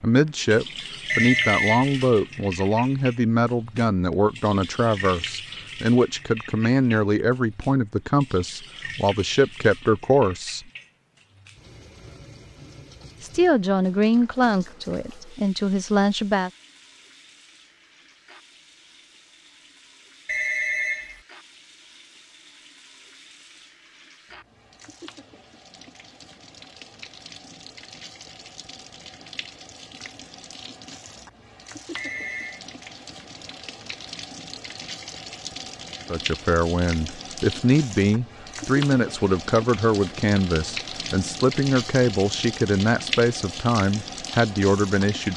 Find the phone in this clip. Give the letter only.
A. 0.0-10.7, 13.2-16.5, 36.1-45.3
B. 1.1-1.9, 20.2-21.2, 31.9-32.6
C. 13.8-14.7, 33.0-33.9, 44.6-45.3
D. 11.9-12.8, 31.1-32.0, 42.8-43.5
B.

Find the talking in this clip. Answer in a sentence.
You can hear the talking from 0.0 to 10.7 s, from 13.2 to 16.5 s and from 36.1 to 45.3 s.